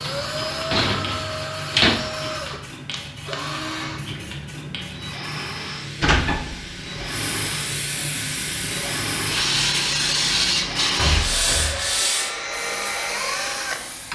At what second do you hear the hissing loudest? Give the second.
10 s.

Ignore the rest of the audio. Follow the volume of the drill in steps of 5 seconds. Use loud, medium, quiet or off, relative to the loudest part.
loud, medium, loud.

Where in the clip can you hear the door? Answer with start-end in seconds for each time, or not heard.
0.1-2.0, 6.0-7.0, 10.9-12.0.